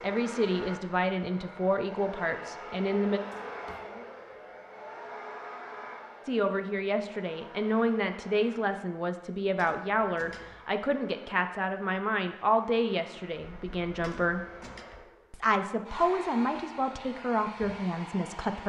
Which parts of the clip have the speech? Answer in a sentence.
The speech can be heard from 0.0 to 3.2 s, from 6.2 to 14.4 s and from 15.3 to 18.6 s.